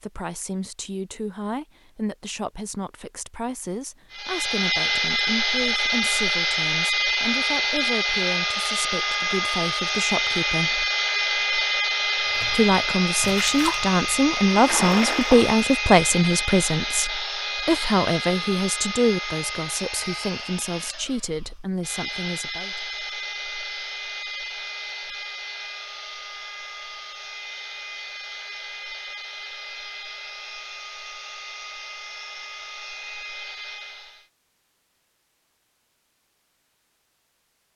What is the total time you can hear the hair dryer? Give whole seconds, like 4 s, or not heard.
30 s.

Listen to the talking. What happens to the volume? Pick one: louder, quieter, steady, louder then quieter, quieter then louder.
louder then quieter.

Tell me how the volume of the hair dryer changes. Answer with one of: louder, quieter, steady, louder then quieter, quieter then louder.
quieter.